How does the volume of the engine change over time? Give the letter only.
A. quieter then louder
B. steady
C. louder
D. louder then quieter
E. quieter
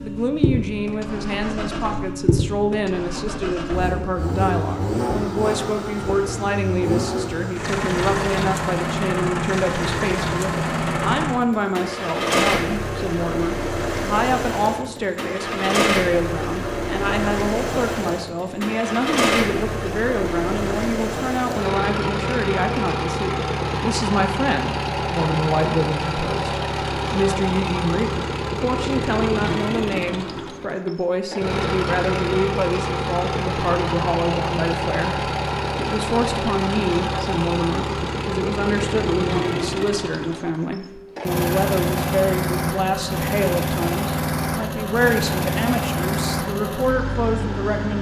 B.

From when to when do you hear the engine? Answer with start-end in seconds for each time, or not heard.
0.0-47.9.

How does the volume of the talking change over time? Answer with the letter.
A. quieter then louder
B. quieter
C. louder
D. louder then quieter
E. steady
E.